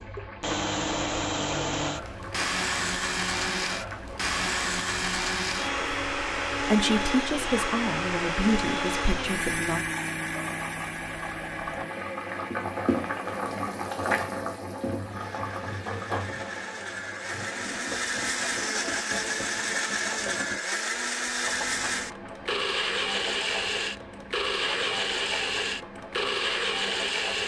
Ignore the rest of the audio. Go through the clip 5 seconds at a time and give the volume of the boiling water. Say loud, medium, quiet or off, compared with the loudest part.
medium, medium, loud, medium, medium, medium.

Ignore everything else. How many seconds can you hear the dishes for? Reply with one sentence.
You can't hear the dishes here.